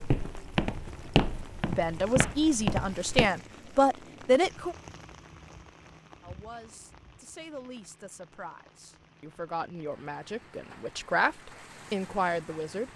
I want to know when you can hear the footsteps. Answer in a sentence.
You can hear the footsteps from 0.0 to 3.3 s.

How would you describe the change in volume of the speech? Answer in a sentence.
The loudness of the speech goes down, then up.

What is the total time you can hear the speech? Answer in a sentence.
You can hear the speech for 10 seconds altogether.